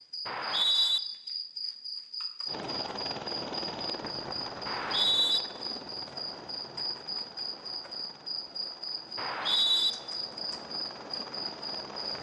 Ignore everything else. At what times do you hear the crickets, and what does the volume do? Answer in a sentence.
The crickets can be heard from 0.0 to 12.1 s, at a steady volume.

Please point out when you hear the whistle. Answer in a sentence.
You can hear the whistle from 0.2 to 1.0 s, from 4.7 to 5.4 s and from 9.2 to 9.9 s.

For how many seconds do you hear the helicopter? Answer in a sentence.
You can hear the helicopter for 10 seconds altogether.